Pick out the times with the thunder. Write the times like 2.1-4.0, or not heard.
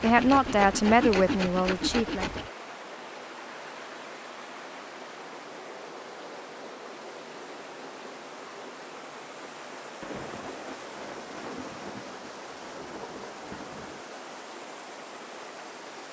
10.0-14.1.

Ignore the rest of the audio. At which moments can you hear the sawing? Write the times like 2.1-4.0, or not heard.
0.0-2.5.